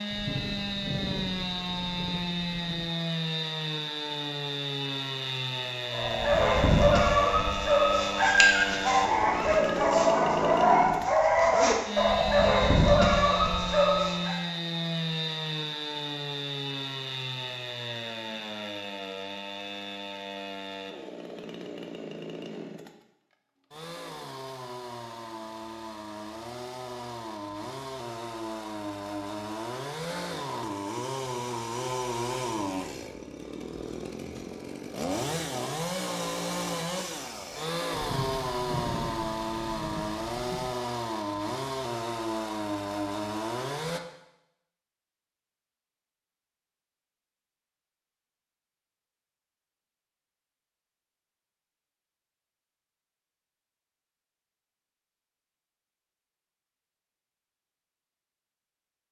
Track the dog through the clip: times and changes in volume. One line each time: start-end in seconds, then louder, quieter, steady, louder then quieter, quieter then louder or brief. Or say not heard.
5.9-14.4 steady.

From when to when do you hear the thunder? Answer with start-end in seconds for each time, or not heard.
0.1-2.9, 37.9-40.8.